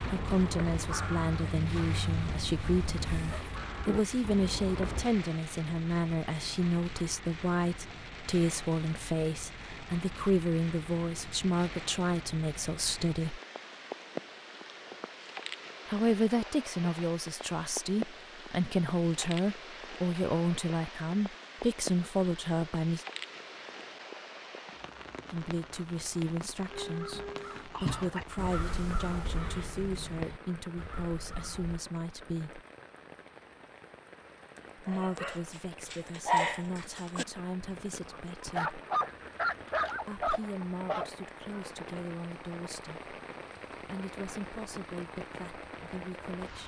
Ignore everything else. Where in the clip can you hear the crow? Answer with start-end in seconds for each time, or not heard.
0.0-5.1, 26.7-31.8.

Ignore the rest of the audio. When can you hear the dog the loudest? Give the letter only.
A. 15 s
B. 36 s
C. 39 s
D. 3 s
B.